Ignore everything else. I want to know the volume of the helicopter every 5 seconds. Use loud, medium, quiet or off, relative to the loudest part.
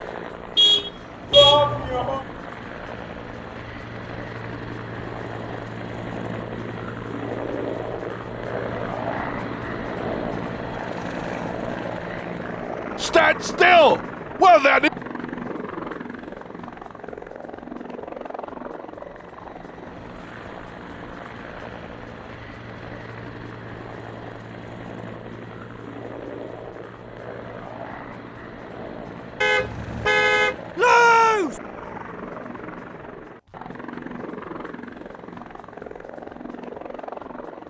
medium, loud, loud, medium, medium, medium, medium, medium.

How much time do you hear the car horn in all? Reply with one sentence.
The car horn can be heard for 2 seconds in total.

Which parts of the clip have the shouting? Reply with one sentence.
The shouting can be heard from 1.3 to 2.2 s, from 13.0 to 14.9 s and from 30.8 to 31.6 s.